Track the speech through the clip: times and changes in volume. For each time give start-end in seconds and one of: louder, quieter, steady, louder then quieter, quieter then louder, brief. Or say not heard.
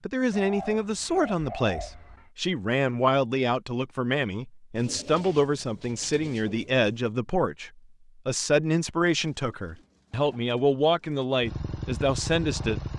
0.1-12.8 steady.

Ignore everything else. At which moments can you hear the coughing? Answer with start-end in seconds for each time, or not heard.
not heard.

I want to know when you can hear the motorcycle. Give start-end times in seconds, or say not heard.
11.4-12.9.